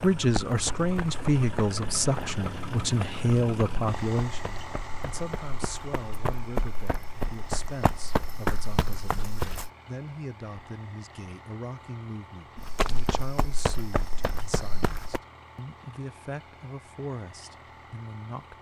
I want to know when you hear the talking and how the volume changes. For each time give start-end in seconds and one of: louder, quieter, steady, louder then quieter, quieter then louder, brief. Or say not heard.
0.0-18.5 quieter.